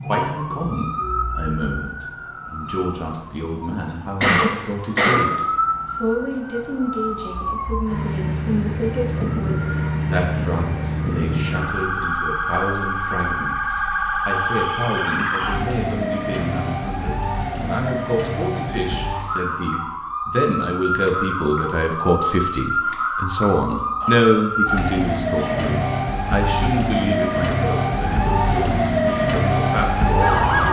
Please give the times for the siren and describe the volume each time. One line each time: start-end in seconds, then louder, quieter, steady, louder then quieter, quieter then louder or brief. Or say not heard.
0.0-30.6 louder.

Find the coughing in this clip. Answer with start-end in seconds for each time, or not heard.
4.2-5.2, 24.0-26.0.